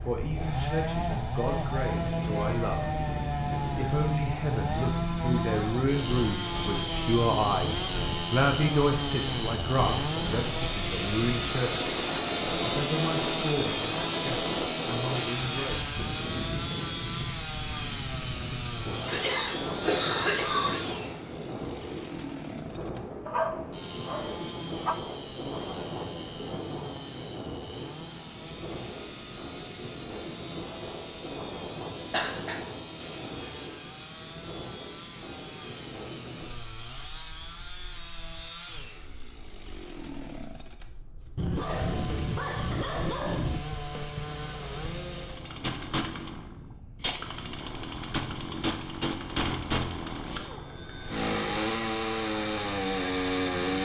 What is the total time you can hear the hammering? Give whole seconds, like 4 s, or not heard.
not heard.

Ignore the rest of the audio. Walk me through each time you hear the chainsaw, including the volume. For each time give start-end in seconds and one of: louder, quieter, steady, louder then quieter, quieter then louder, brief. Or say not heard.
0.0-53.8 quieter then louder.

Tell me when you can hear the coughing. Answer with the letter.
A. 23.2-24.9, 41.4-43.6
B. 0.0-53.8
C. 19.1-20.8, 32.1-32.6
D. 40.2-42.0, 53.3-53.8
C.